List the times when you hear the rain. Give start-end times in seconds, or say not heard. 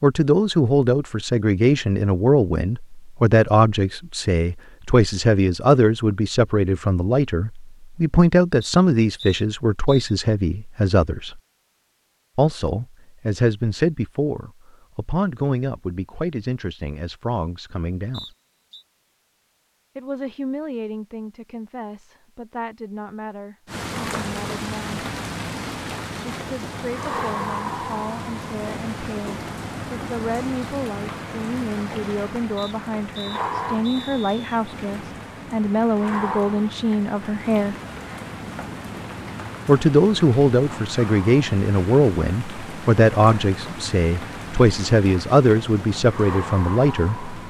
23.6-47.4.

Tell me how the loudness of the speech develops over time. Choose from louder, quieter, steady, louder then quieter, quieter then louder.
quieter then louder.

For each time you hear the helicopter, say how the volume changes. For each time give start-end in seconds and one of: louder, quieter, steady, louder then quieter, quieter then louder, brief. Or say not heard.
not heard.